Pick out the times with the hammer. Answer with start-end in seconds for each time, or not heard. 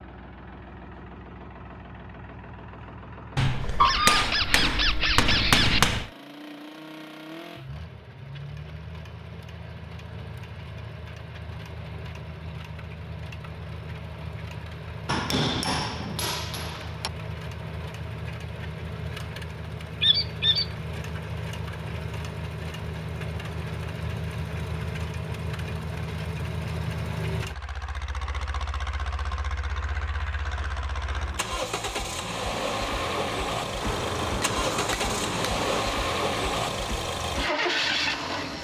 3.4-6.1, 15.1-17.1, 33.8-35.9.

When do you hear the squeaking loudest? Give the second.
4 s.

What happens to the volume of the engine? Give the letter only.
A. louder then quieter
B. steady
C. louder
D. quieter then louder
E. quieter
C.